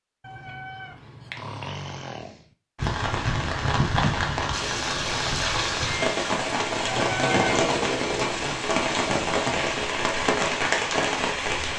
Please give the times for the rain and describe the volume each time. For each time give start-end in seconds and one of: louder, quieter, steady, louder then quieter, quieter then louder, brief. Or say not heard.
2.8-11.7 steady.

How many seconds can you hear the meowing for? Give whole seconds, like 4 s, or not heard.
2 s.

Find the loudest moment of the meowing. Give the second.
7 s.